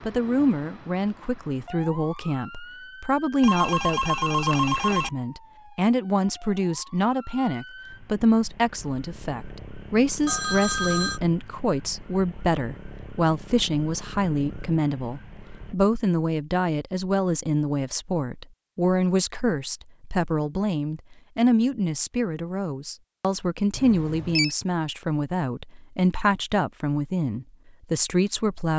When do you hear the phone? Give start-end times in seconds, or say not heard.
3.4-5.1, 10.2-11.2, 23.8-24.6.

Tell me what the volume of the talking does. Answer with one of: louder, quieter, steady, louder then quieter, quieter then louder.
steady.